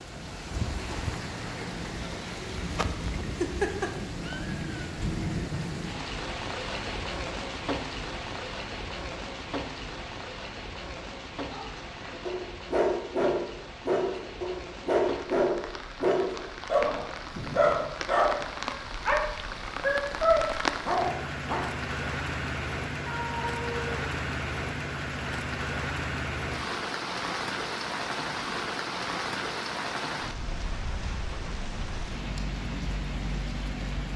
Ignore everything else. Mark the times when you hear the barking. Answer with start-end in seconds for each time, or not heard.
11.5-21.6.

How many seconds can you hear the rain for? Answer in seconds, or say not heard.
34 s.